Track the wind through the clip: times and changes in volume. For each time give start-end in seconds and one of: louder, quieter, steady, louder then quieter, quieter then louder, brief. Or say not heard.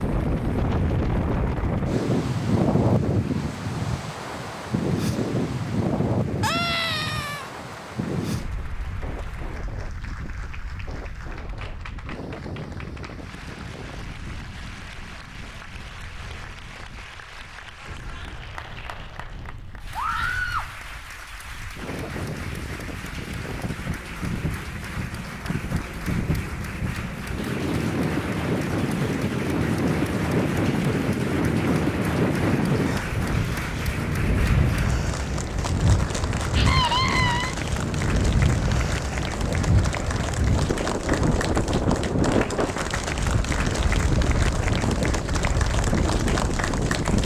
0.0-47.1 quieter then louder.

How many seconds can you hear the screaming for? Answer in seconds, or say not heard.
3 s.